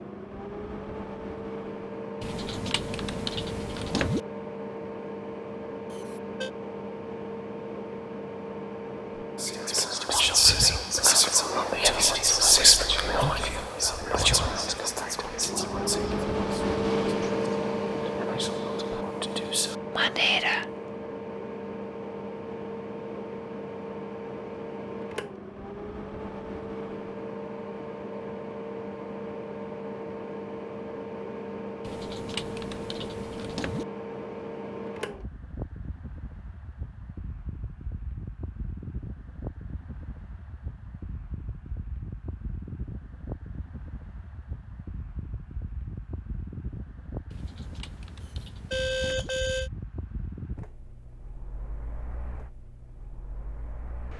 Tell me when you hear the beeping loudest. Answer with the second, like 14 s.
49 s.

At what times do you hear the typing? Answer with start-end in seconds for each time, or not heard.
2.2-4.2, 31.8-33.9, 47.3-49.3.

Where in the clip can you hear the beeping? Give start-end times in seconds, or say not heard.
5.9-6.5, 48.2-49.7.